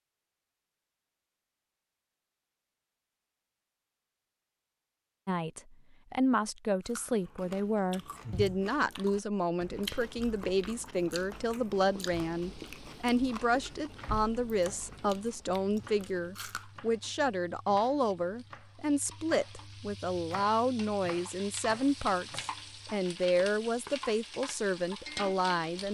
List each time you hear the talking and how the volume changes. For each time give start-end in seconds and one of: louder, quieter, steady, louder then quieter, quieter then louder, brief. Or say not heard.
5.2-25.9 steady.